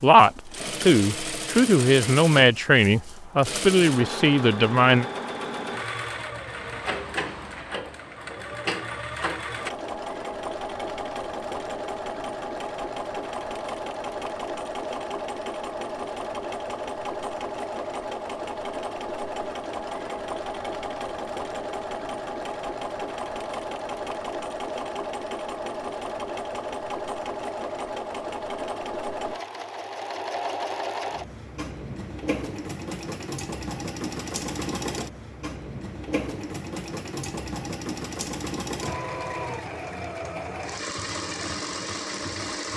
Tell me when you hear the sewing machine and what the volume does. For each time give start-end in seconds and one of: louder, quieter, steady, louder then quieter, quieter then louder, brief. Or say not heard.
0.0-42.7 steady.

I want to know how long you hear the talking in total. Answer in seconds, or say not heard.
5 s.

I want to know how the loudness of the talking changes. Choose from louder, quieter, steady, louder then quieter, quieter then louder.
steady.